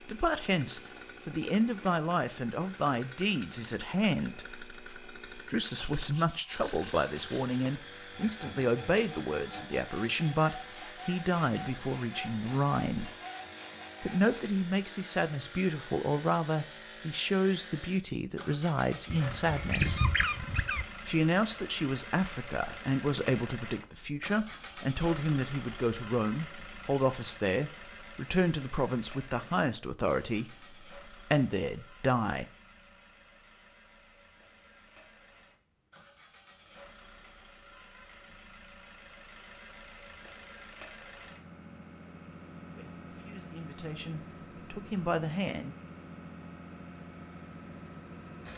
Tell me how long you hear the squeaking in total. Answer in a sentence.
You can hear the squeaking for 2 seconds altogether.